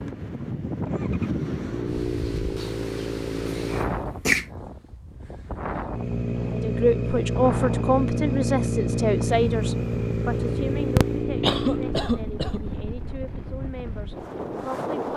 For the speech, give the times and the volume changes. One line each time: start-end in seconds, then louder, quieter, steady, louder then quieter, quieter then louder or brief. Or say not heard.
6.5-15.1 quieter.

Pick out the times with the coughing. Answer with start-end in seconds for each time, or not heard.
3.5-4.5, 10.9-12.7.